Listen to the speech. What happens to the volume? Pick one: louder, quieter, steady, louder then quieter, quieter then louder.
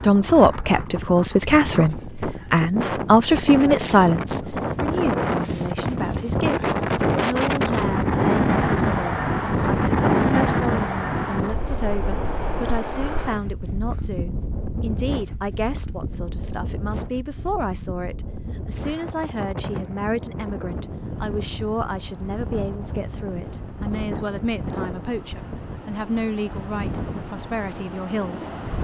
quieter.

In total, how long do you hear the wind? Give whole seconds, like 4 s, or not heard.
29 s.